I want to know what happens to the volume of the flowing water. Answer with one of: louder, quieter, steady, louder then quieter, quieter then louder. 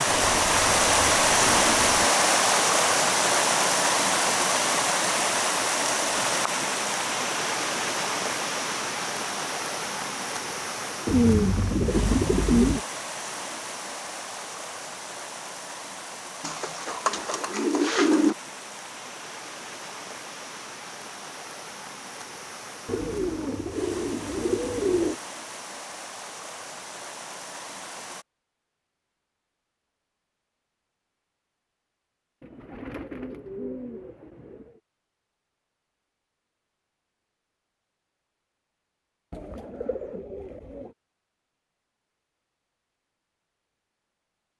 quieter.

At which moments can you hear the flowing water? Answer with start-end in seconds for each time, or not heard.
0.0-28.2.